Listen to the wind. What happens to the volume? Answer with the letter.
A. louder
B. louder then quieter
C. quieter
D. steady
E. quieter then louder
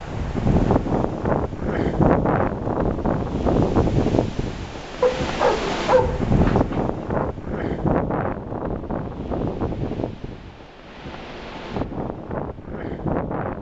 C.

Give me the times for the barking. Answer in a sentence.
The barking can be heard from 5.0 to 7.3 s.